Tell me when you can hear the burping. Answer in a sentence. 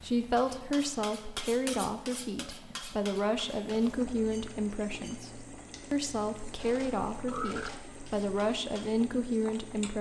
You can hear the burping from 7.1 to 7.7 s.